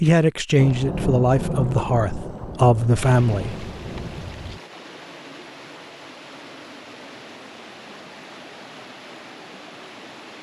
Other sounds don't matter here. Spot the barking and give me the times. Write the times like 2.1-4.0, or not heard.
not heard.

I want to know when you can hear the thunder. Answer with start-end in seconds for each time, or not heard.
0.6-4.6.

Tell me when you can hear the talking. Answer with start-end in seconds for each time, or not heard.
0.0-3.6.